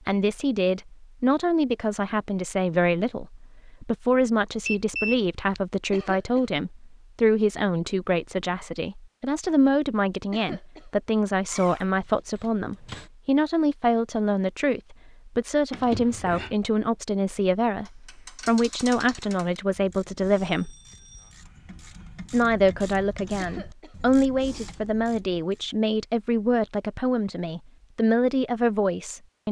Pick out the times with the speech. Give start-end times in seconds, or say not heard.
0.1-20.8, 22.3-29.4.